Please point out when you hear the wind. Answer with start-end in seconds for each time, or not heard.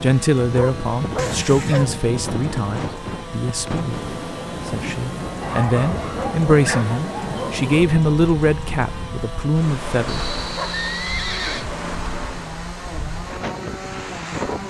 0.0-14.6.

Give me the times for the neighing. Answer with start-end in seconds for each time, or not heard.
1.1-1.9, 10.1-11.7.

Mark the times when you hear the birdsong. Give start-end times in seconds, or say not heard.
not heard.